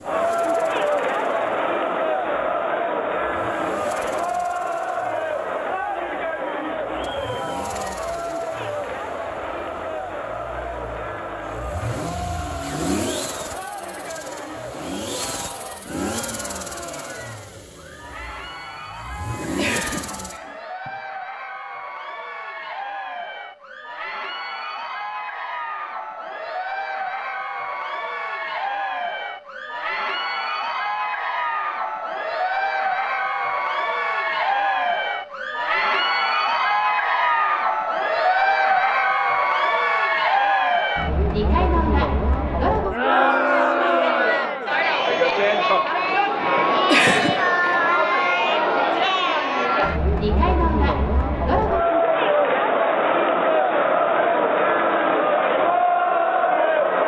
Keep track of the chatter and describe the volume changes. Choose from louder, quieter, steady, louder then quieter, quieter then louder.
quieter then louder.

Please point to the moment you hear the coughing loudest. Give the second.
47 s.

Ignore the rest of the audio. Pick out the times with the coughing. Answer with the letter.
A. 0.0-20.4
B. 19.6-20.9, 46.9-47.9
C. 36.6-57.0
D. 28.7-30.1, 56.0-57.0
B.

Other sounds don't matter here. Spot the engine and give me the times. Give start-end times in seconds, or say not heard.
0.0-20.4.